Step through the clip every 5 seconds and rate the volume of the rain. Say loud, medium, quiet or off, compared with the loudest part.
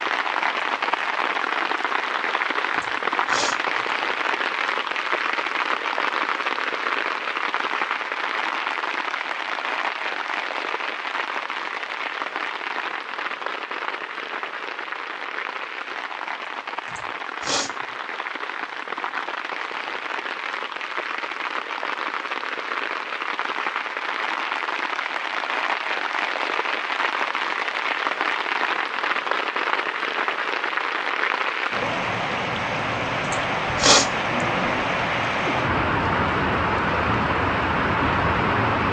loud, loud, medium, medium, medium, loud, loud, loud.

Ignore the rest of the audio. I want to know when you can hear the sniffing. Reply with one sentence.
You can hear the sniffing from 2.8 to 3.9 s, from 16.9 to 17.8 s and from 33.2 to 34.1 s.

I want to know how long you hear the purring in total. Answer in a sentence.
You can't hear the purring here.